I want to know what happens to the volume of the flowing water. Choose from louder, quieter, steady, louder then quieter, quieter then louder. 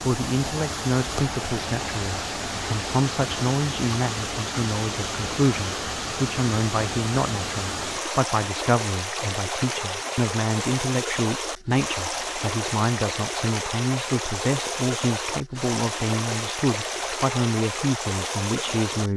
steady.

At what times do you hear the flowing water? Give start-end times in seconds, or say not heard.
0.0-19.1.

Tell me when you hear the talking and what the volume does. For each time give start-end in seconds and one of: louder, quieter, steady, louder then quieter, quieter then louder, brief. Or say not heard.
0.0-19.1 steady.